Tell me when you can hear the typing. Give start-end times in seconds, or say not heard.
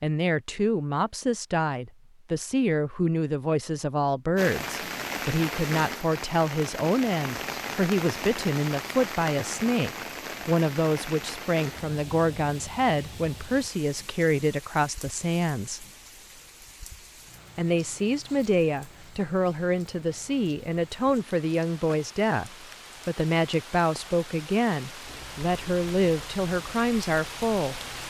not heard.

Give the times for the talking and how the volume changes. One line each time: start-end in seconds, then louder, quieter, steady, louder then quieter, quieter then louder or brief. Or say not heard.
0.0-15.8 steady
17.6-27.8 steady.